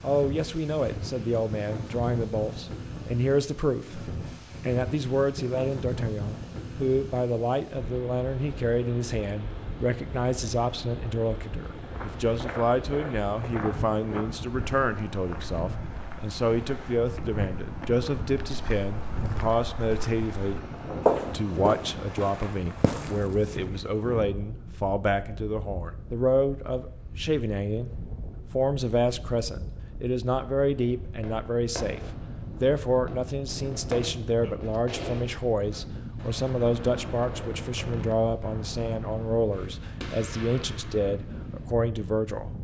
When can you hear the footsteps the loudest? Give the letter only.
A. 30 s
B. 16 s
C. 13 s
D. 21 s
D.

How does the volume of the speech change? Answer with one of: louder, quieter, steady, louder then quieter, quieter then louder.
steady.